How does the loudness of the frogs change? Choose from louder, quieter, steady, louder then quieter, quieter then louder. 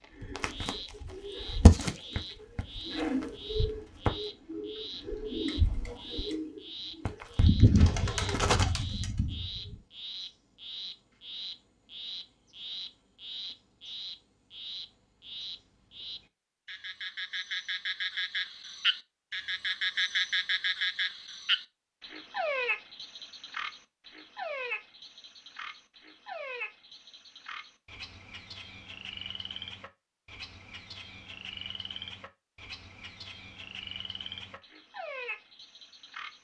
louder then quieter.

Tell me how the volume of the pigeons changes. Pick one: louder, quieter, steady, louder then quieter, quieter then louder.
quieter then louder.